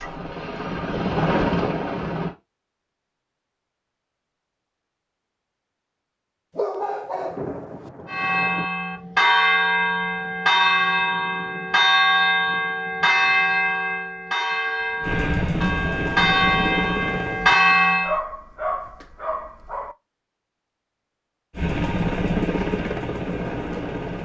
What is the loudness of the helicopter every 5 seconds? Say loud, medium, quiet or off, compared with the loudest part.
loud, off, off, loud, loud.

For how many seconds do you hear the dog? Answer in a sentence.
You can hear the dog for 3 seconds altogether.